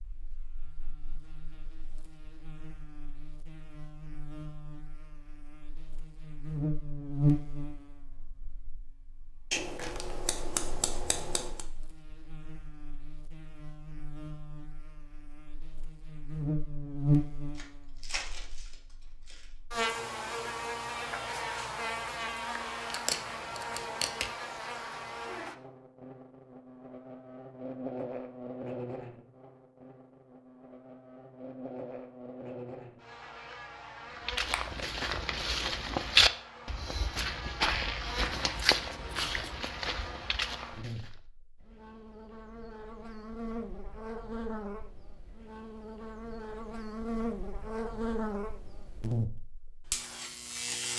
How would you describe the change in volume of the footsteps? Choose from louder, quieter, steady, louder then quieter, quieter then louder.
louder then quieter.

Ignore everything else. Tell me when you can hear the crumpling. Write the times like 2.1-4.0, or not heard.
17.6-19.4, 34.4-35.2.